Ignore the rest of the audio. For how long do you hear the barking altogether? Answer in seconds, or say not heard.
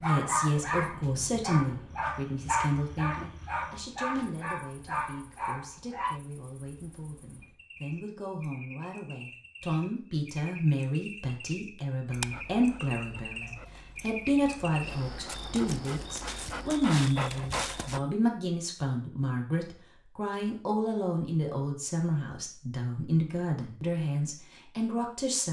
12 s.